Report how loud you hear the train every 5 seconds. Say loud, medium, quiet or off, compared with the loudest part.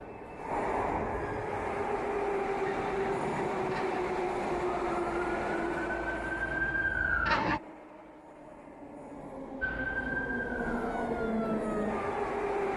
loud, medium, loud.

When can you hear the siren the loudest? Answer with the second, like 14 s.
7 s.